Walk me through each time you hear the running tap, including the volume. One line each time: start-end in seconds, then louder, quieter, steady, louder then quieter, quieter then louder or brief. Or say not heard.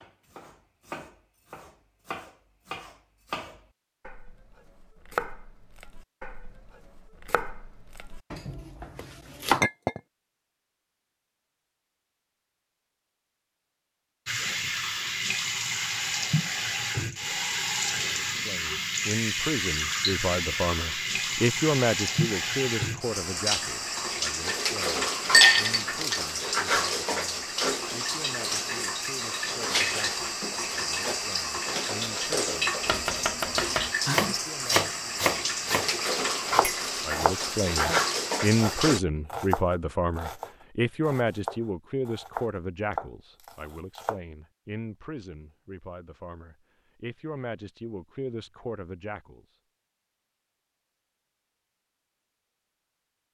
14.2-39.0 steady.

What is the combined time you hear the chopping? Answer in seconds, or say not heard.
21 s.